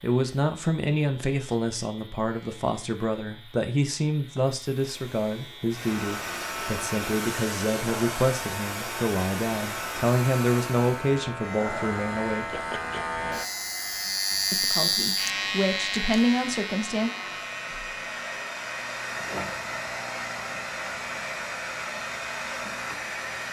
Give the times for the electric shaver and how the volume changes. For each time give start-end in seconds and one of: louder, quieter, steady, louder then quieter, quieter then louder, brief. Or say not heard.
0.0-23.4 louder then quieter.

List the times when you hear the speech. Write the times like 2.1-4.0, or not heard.
0.0-12.6, 14.5-17.1.